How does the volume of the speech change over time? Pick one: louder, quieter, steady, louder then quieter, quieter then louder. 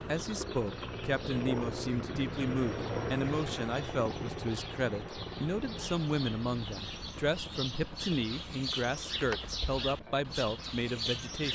steady.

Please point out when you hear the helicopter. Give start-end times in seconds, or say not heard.
0.0-11.5.